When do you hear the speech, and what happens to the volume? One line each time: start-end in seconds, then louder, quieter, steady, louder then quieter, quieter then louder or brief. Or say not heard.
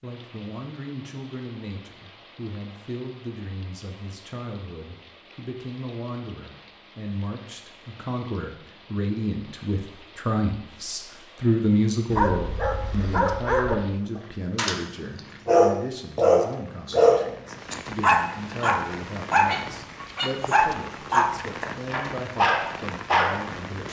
0.0-23.8 louder then quieter.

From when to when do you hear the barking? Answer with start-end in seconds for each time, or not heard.
12.1-14.8, 15.4-23.4.